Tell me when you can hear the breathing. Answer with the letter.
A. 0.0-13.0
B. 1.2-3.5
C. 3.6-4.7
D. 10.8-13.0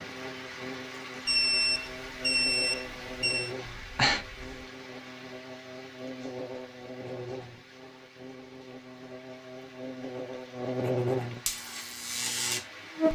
C.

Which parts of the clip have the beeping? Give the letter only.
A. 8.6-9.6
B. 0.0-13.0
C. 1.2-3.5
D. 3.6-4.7
C.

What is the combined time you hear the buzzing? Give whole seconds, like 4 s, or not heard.
13 s.